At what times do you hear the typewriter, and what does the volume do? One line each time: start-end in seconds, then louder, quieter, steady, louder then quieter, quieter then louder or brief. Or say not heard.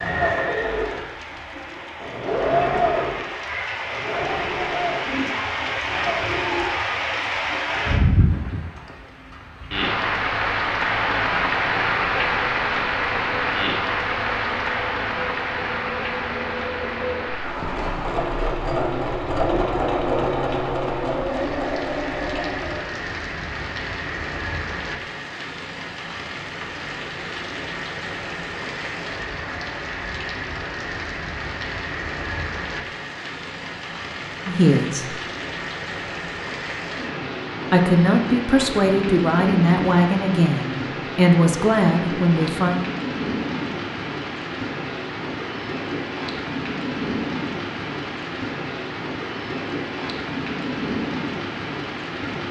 not heard.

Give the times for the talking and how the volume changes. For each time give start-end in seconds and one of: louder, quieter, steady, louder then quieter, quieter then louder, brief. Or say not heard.
34.5-35.2 brief
37.7-42.8 steady.